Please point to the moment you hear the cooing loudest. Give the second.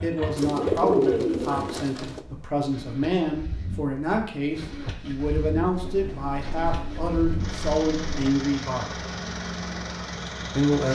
1 s.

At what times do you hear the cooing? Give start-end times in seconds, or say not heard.
0.3-2.2, 5.7-8.3.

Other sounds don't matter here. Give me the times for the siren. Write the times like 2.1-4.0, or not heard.
not heard.